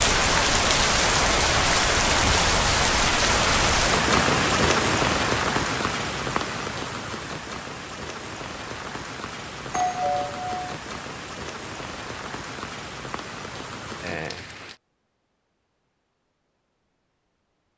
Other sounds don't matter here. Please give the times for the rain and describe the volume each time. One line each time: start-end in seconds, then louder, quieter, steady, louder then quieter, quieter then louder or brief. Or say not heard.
0.0-14.8 quieter.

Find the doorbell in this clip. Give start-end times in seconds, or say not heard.
9.7-10.7.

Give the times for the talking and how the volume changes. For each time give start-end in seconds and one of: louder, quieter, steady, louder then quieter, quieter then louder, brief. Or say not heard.
not heard.